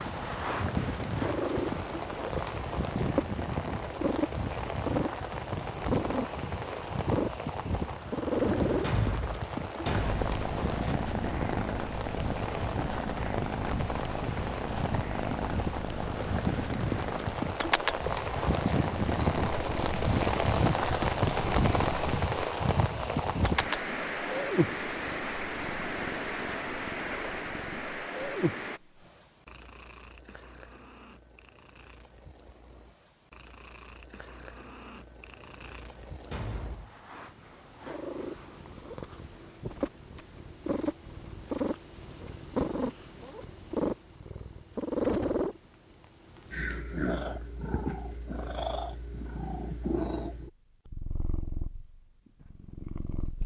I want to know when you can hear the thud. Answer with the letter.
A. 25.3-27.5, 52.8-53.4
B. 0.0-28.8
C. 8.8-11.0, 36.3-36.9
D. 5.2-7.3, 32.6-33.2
C.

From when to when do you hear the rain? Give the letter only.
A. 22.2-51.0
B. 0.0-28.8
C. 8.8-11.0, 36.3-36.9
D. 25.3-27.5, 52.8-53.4
B.